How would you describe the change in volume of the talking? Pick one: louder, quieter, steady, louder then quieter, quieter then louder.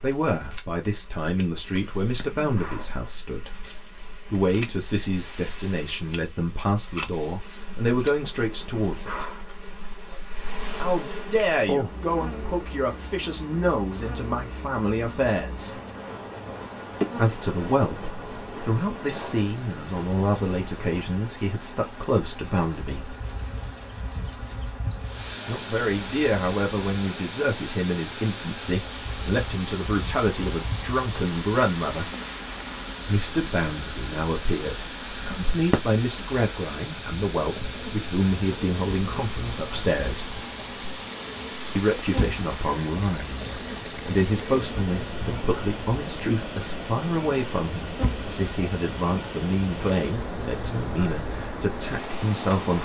steady.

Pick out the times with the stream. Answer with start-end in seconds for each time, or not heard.
25.0-52.8.